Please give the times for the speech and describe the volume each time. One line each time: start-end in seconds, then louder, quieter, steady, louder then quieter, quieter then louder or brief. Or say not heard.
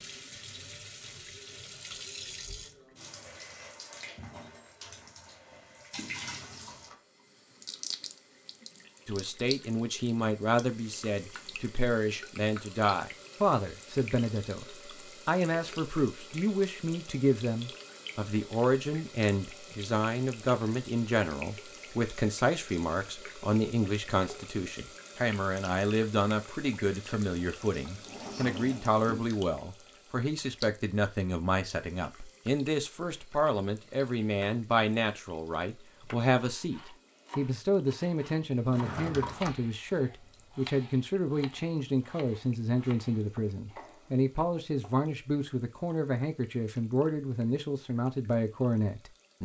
9.1-14.7 steady
15.2-49.4 steady.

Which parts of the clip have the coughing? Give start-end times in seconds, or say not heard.
not heard.